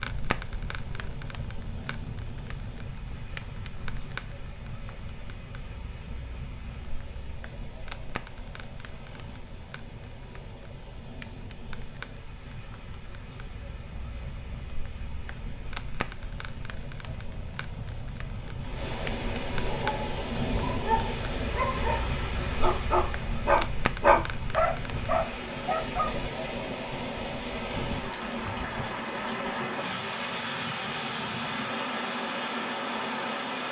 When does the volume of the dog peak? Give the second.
24 s.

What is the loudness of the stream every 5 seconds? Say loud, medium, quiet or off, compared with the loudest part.
quiet, quiet, quiet, medium, loud, loud, loud.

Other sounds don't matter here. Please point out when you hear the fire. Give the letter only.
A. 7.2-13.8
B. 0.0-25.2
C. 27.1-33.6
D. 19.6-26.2
B.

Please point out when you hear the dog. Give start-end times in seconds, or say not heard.
19.6-26.2.